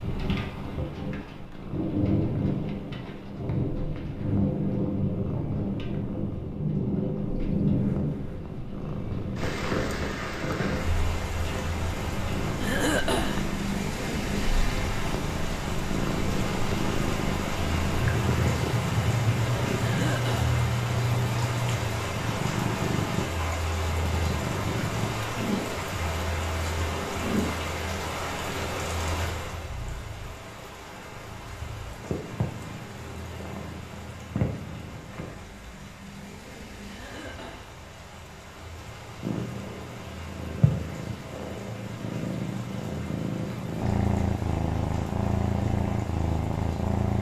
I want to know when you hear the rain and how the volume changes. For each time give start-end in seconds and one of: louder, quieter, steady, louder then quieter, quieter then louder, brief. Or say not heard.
0.0-47.1 quieter.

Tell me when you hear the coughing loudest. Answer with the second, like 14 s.
13 s.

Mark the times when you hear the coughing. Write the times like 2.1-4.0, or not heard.
12.6-13.4, 19.8-20.6, 36.9-37.7.